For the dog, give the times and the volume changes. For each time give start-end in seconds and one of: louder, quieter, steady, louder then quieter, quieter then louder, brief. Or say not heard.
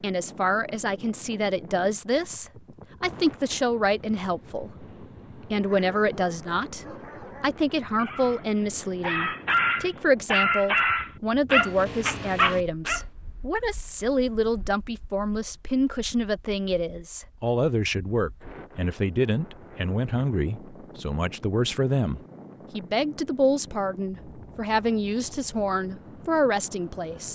5.5-13.1 louder.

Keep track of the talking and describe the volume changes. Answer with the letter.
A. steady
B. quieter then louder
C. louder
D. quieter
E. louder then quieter
A.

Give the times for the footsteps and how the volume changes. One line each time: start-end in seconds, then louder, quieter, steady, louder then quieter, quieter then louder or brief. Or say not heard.
not heard.